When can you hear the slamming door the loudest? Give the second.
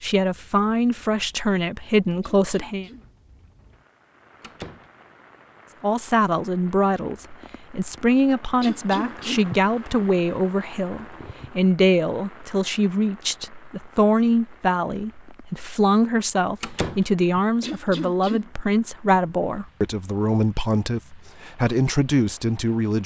17 s.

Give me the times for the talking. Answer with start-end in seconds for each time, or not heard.
0.0-2.9, 5.8-23.0.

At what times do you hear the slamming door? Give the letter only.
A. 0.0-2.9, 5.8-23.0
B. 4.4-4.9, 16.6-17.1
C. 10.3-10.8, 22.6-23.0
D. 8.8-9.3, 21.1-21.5
B.